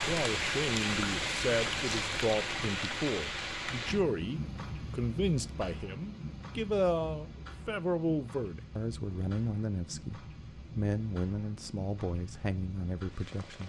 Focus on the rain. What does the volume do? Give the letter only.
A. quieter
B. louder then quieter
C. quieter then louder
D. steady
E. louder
A.